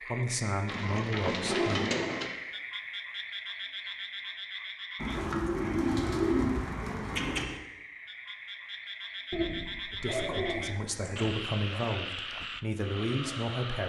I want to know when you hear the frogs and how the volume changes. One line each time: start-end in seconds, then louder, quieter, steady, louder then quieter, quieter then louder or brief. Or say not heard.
0.0-13.8 quieter then louder.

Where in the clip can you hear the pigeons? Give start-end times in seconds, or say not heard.
0.7-2.3, 5.0-7.6, 9.3-11.2.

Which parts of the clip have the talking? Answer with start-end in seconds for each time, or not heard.
0.1-1.9, 9.9-13.8.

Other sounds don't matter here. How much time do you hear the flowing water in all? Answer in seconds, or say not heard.
not heard.